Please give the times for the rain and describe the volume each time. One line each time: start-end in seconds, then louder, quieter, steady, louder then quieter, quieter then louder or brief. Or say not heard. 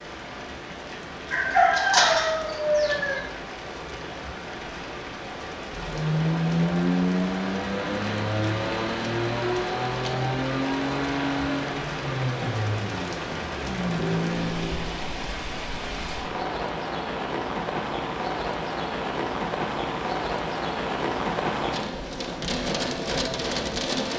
0.0-24.1 louder.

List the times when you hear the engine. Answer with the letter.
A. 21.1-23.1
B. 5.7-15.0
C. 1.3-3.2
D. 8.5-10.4
B.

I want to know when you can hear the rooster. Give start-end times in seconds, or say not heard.
1.3-3.2.